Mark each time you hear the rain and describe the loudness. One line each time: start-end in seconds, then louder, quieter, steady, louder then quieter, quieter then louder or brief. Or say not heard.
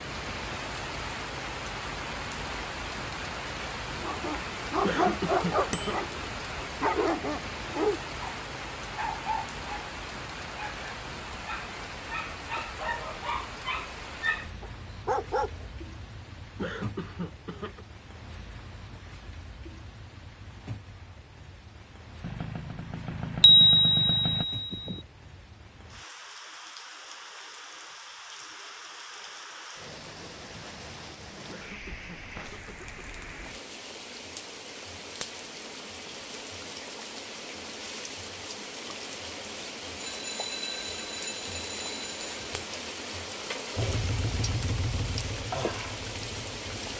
0.0-46.9 quieter then louder.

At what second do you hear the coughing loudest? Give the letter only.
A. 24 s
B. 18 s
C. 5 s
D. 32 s
C.